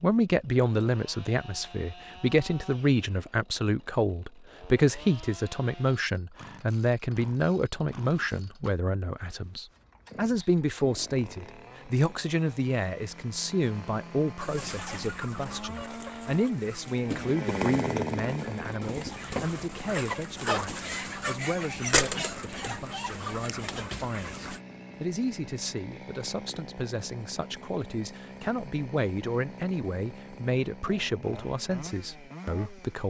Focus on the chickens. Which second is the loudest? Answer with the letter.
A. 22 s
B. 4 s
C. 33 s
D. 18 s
A.